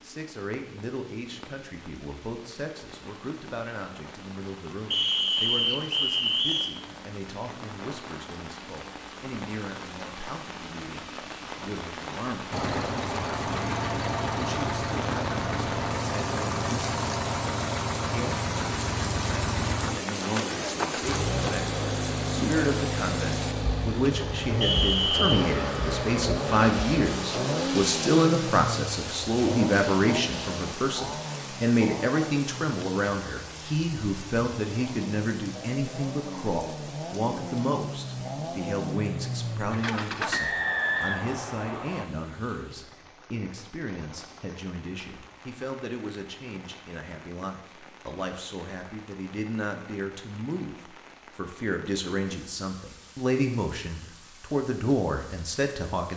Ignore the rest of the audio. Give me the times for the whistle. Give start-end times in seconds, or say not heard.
4.9-6.8, 24.6-25.4, 40.3-42.0.